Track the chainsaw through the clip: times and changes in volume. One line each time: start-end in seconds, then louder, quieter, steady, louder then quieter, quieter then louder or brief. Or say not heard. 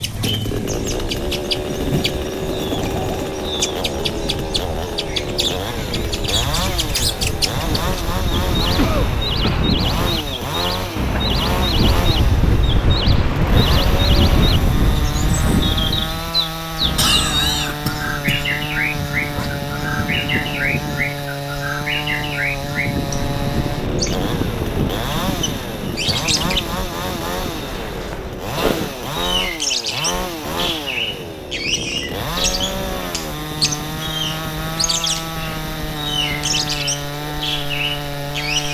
0.0-38.6 steady.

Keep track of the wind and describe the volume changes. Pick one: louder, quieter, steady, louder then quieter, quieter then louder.
louder then quieter.